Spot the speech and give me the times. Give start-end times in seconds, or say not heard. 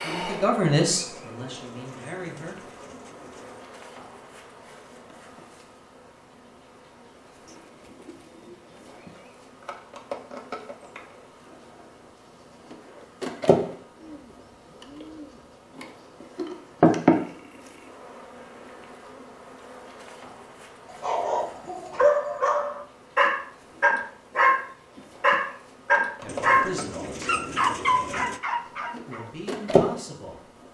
0.0-2.5, 26.2-27.5, 28.9-30.4.